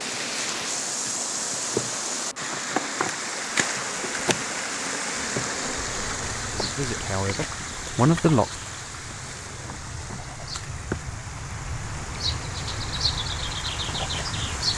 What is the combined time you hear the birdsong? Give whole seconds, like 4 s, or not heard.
9 s.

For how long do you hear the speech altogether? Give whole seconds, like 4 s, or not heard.
2 s.